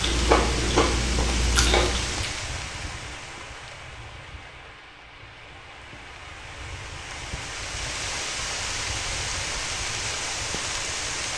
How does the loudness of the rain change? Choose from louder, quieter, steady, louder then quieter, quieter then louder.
quieter then louder.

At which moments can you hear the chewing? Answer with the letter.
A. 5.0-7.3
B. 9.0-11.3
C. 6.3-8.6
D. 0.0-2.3
D.